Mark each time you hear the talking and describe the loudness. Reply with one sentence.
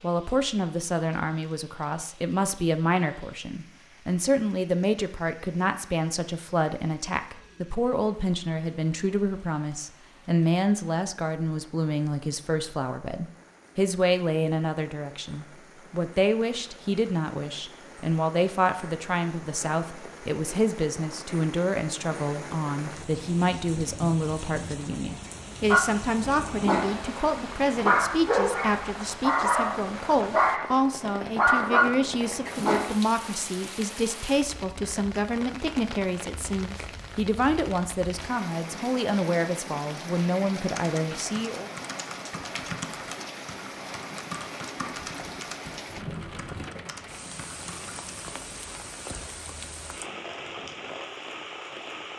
The talking can be heard from 0.0 to 41.7 s, at a steady volume.